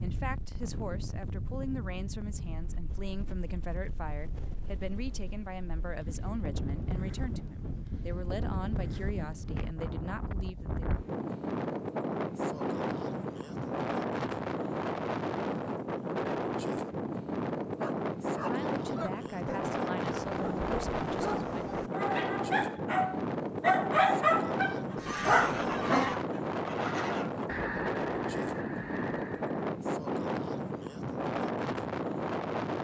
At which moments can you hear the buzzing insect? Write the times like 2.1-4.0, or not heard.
not heard.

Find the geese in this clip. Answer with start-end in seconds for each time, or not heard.
24.7-29.6.